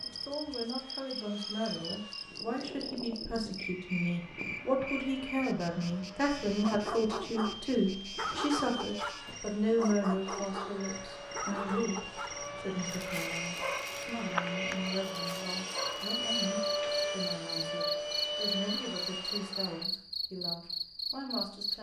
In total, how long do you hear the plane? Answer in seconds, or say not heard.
20 s.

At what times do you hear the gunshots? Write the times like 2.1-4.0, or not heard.
not heard.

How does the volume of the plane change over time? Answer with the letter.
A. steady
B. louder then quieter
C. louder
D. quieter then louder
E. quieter
C.